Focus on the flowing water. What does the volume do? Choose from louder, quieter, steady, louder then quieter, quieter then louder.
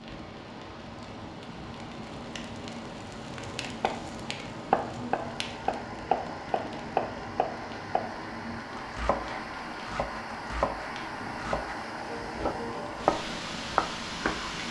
louder.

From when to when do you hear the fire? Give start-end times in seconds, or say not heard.
0.0-14.6.